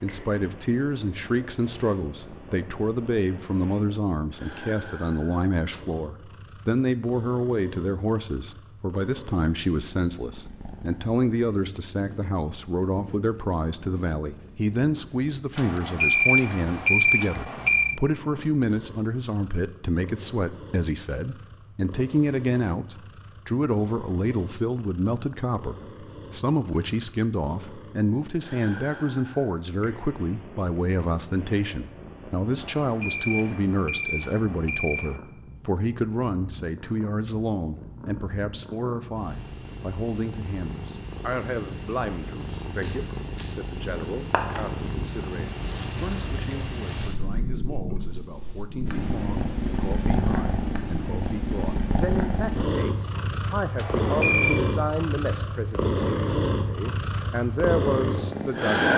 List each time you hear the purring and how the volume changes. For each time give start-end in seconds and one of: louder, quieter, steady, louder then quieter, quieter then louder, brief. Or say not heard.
0.0-58.9 louder.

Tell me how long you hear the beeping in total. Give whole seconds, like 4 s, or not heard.
6 s.